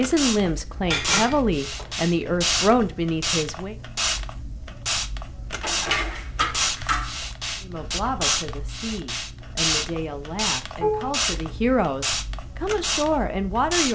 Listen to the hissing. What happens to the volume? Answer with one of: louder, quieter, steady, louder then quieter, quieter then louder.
steady.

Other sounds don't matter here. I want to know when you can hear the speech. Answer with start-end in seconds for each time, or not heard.
0.0-3.8, 7.6-13.9.